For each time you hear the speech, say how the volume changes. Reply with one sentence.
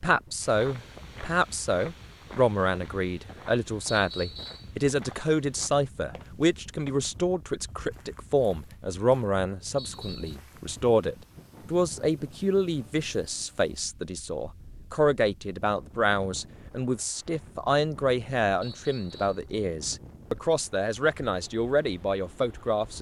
The speech can be heard from 0.0 to 22.9 s, at a steady volume.